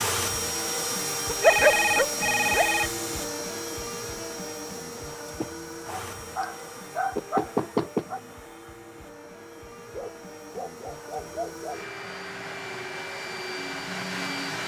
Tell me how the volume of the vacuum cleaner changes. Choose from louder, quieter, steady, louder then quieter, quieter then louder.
quieter then louder.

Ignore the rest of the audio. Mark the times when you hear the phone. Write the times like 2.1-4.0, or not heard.
1.4-2.9.